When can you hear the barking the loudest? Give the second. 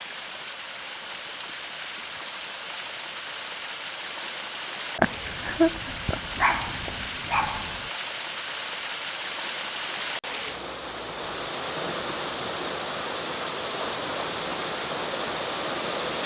6 s.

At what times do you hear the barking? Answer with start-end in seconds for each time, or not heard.
5.0-7.8.